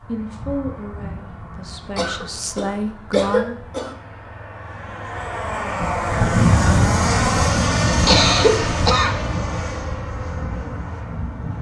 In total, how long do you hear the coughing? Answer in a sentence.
The coughing can be heard for 3 seconds in total.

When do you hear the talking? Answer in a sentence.
You can hear the talking from 0.0 to 3.6 s.